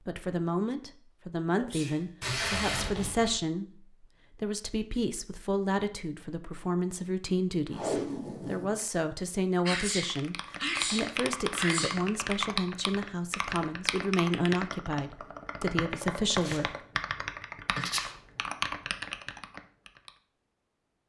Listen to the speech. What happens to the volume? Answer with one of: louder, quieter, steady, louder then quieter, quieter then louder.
steady.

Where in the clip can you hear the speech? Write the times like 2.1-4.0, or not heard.
0.1-16.8.